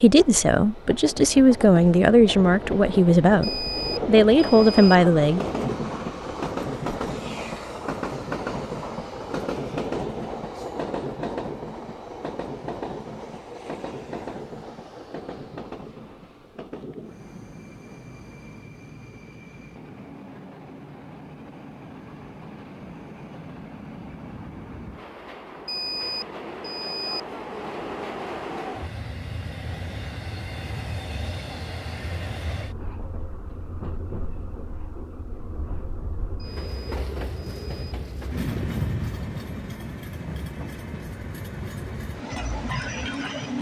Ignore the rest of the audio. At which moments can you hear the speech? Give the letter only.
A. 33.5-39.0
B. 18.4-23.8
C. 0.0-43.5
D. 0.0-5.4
D.